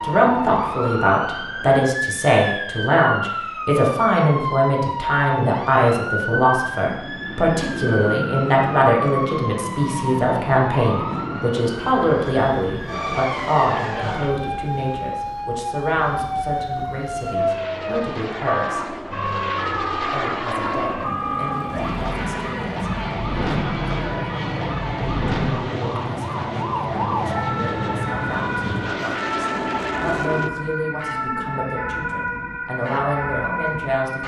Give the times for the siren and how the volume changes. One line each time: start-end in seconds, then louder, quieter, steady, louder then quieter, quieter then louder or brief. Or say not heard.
0.0-34.2 steady.